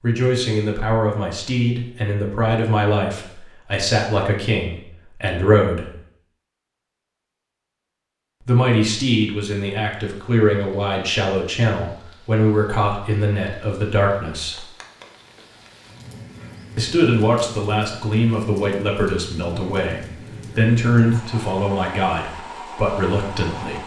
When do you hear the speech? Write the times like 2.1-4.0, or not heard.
0.0-5.9, 8.4-14.7, 16.8-23.8.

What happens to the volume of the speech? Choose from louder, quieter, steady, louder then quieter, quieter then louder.
steady.